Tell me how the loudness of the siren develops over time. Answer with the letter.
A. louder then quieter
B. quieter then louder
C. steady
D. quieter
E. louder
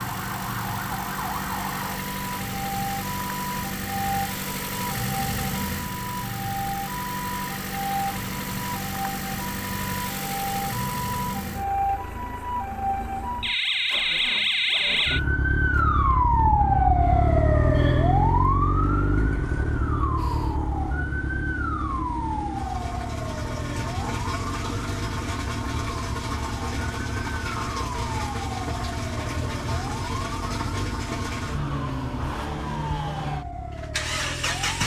A.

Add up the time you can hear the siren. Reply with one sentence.
You can hear the siren for 35 seconds altogether.